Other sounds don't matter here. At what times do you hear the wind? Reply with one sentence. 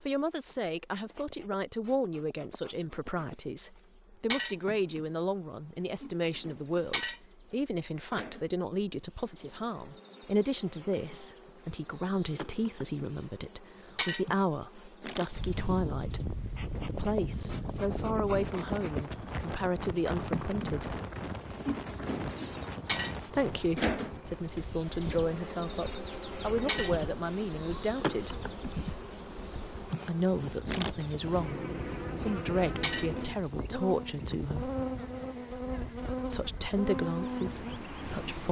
You can hear the wind from 15.3 to 38.4 s.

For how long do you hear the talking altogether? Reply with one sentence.
You can hear the talking for 33 seconds altogether.